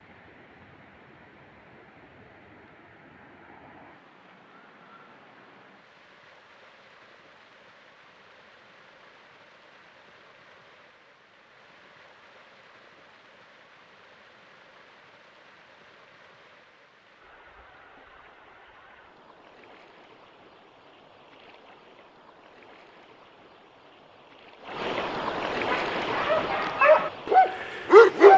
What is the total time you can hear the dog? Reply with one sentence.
You can hear the dog for 2 seconds altogether.